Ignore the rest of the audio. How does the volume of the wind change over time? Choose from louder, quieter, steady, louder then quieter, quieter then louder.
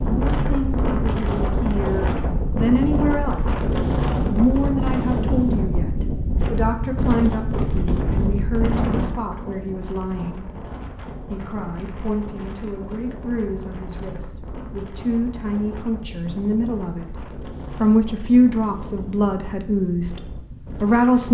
quieter.